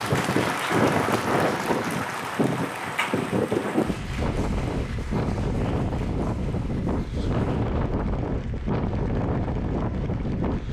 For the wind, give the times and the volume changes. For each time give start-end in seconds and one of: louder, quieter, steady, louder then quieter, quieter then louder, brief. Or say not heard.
0.0-10.6 steady.